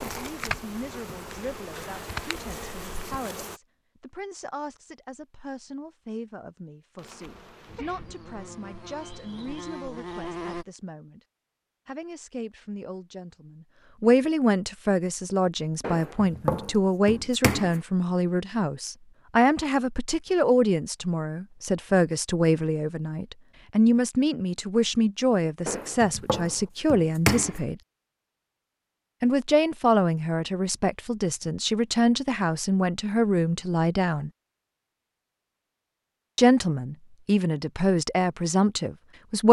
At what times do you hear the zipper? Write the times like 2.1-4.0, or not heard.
not heard.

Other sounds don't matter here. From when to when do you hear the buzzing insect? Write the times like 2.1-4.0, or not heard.
0.0-3.6, 7.0-10.7.